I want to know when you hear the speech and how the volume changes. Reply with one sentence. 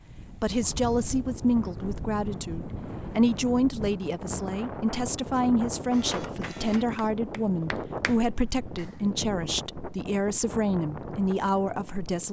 The speech can be heard from 0.3 to 12.2 s, at a steady volume.